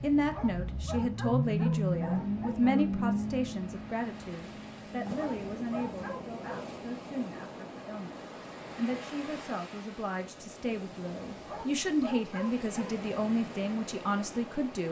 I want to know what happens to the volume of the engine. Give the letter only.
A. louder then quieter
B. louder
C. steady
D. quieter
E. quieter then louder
A.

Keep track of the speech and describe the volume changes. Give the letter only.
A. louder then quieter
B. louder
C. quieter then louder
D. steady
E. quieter
C.